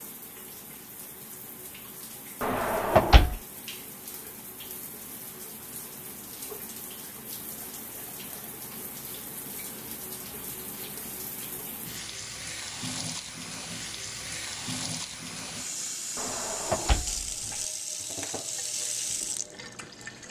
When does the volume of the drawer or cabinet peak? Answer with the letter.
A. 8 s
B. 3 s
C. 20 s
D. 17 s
B.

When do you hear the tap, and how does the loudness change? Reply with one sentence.
The tap can be heard from 0.0 to 20.2 s, getting louder.